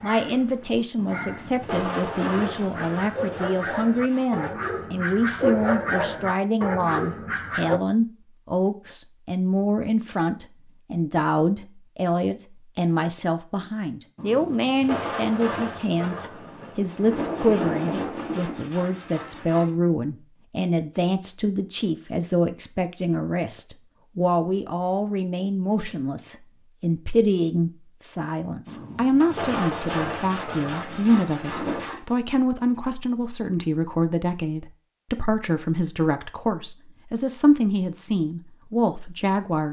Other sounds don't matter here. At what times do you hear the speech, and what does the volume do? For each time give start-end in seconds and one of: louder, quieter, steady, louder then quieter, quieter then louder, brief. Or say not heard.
0.0-39.6 steady.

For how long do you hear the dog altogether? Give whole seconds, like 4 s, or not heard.
8 s.